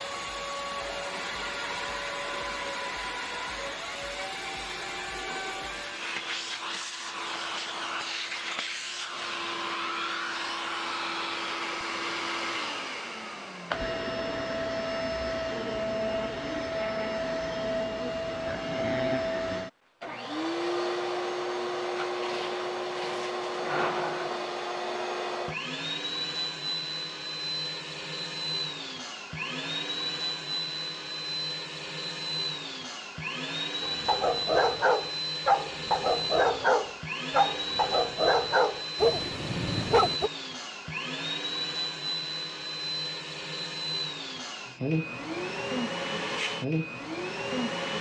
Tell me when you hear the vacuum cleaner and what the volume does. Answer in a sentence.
You can hear the vacuum cleaner from 0.0 to 47.9 s, at a steady volume.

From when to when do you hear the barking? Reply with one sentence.
You can hear the barking from 33.8 to 40.3 s.